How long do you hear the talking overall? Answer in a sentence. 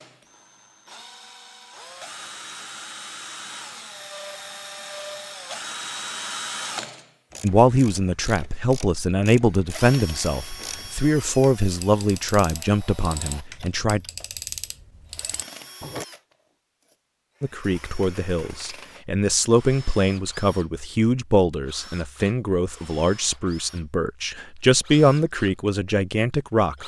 You can hear the talking for 16 seconds altogether.